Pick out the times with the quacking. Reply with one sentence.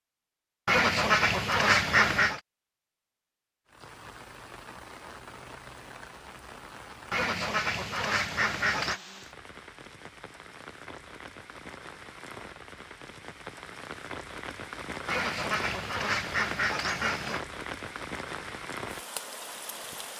You can hear the quacking from 0.7 to 2.4 s, from 7.1 to 9.0 s and from 15.1 to 17.4 s.